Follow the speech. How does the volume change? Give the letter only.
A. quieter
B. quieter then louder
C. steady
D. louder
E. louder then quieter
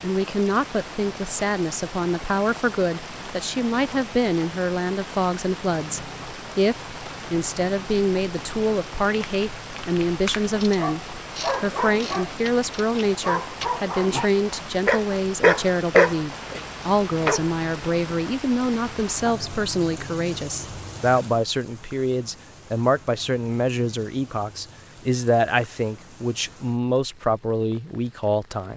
C.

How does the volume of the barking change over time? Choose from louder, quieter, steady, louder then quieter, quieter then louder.
louder.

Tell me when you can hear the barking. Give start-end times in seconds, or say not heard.
10.4-17.6.